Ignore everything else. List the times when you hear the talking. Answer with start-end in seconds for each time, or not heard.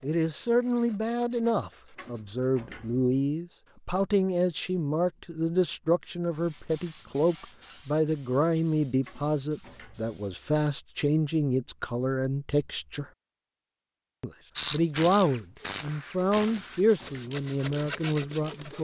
0.0-13.1, 14.2-18.7.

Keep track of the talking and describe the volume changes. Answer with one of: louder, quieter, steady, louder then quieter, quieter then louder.
steady.